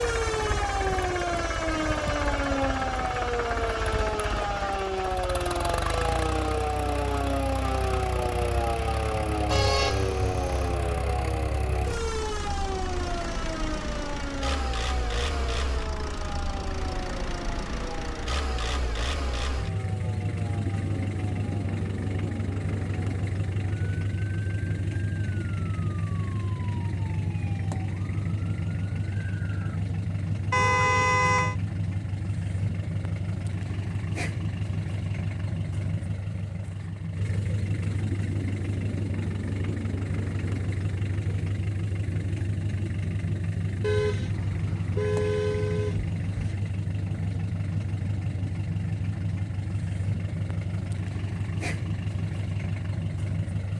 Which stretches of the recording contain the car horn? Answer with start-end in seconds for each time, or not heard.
9.5-10.8, 30.5-31.6, 43.8-46.5.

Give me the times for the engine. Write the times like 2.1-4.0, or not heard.
0.0-53.7.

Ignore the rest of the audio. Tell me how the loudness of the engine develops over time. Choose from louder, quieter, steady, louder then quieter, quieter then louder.
steady.